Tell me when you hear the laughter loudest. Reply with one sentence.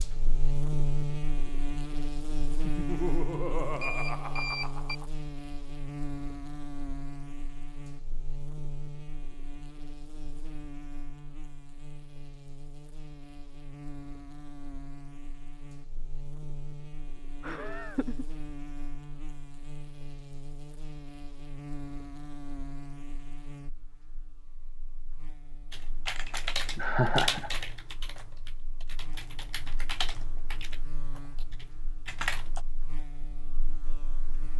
The volume of the laughter peaks at 27 seconds.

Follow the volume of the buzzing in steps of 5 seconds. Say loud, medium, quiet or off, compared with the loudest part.
loud, medium, medium, medium, medium, quiet, quiet.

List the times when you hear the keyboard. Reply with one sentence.
You can hear the keyboard from 25.7 to 32.6 s.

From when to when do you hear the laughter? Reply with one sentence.
You can hear the laughter from 2.6 to 5.0 s, from 17.4 to 18.2 s and from 26.8 to 27.5 s.